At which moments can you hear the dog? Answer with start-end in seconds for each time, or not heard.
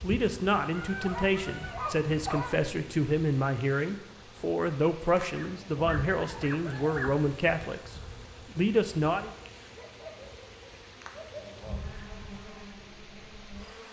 0.7-2.6, 5.3-7.2, 9.7-11.4.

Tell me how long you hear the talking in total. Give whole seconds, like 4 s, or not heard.
9 s.